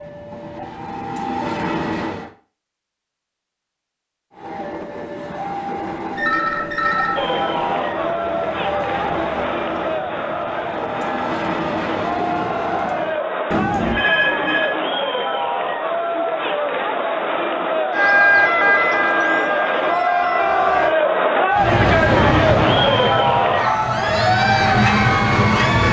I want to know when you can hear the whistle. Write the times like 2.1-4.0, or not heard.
not heard.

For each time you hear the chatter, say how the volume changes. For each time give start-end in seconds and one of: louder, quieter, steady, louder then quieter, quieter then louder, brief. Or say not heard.
7.2-25.8 louder.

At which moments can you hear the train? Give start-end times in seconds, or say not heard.
0.0-2.3, 4.3-13.2, 21.5-25.8.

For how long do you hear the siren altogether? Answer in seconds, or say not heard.
3 s.